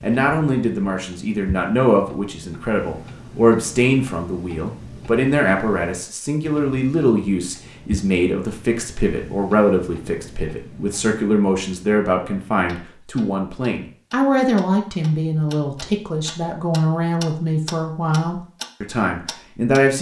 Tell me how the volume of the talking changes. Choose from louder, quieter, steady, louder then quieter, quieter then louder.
steady.